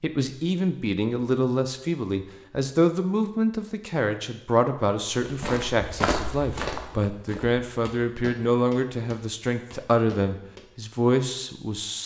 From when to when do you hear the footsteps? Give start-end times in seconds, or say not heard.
5.2-10.7.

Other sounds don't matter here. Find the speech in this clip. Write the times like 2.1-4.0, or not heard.
0.0-12.0.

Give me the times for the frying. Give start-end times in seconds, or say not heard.
not heard.